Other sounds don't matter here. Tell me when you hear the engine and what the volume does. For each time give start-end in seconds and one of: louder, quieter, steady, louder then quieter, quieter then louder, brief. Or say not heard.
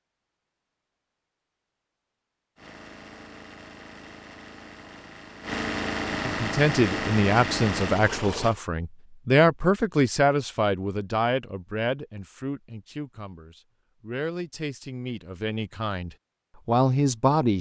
2.5-8.6 louder.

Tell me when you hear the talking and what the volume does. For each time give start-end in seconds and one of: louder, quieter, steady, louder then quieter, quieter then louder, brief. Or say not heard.
6.2-17.5 quieter then louder.